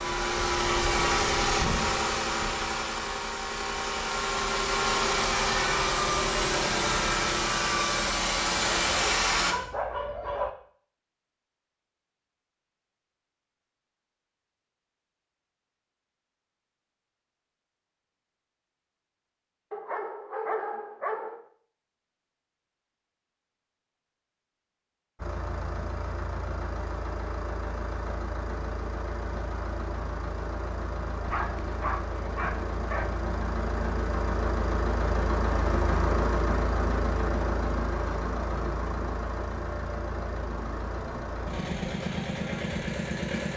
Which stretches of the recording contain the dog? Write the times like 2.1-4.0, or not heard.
8.5-10.5, 19.7-21.4, 31.2-33.1.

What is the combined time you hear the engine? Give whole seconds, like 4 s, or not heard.
28 s.